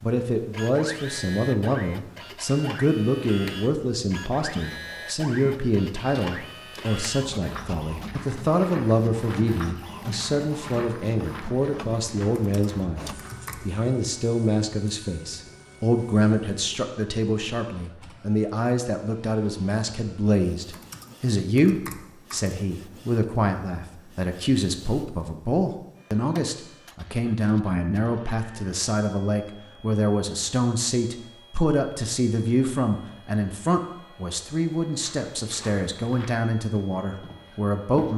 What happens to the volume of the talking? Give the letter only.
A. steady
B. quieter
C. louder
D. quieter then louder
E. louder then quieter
A.